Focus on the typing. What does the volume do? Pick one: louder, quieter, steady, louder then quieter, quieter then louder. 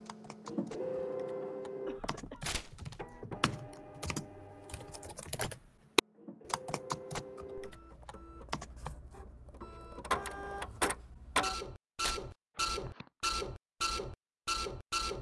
louder then quieter.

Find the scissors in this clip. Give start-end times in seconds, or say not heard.
not heard.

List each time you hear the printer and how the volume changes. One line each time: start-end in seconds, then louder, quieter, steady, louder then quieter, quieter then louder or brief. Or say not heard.
0.0-15.1 quieter then louder.